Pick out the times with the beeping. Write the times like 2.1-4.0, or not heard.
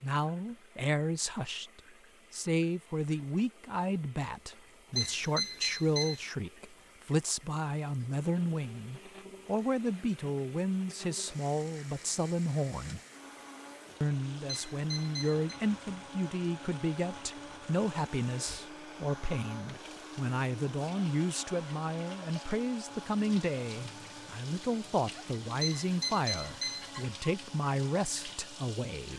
5.0-6.2, 14.4-15.4, 25.6-26.9.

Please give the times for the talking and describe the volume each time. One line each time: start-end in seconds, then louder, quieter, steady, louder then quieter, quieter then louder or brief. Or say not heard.
0.0-13.0 steady
14.0-29.1 steady.